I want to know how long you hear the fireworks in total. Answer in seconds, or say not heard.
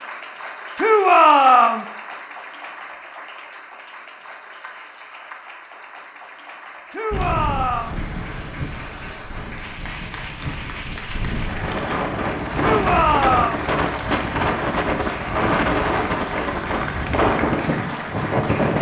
not heard.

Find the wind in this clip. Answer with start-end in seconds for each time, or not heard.
7.1-18.7.